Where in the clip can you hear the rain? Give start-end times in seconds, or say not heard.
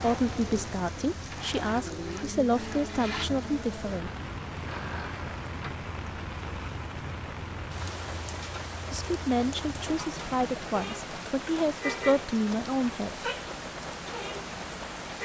0.0-15.2.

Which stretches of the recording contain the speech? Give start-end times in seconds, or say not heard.
0.0-4.1, 8.9-13.2.